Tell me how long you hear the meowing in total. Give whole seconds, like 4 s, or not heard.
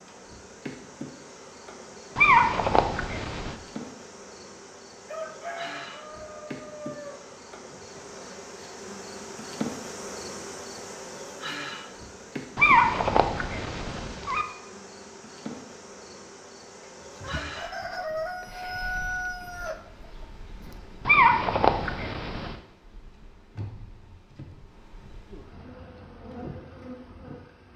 5 s.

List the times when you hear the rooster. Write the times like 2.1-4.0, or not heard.
5.0-7.8, 17.0-20.8.